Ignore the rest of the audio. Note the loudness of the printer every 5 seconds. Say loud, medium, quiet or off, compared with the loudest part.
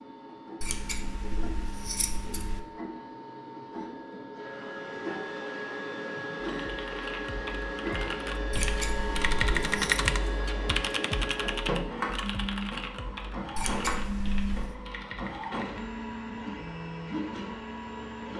medium, loud, loud, loud.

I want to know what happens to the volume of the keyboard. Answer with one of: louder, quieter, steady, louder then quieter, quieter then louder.
louder then quieter.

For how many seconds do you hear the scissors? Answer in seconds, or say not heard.
5 s.